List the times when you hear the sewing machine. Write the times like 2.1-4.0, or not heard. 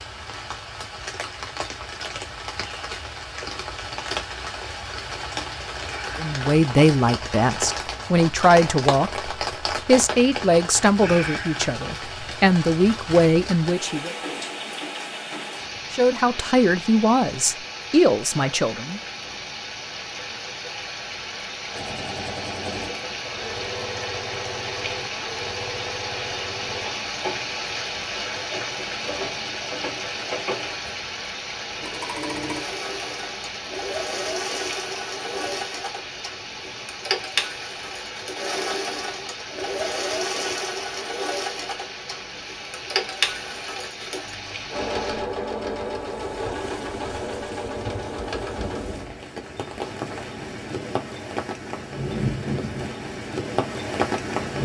21.7-48.9.